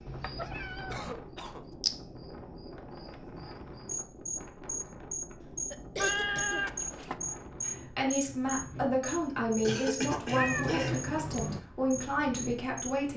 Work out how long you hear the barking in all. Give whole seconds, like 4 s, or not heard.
not heard.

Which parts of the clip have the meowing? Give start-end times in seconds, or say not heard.
0.1-1.1, 6.0-7.2, 10.2-11.6.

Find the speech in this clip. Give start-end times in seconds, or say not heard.
7.7-13.1.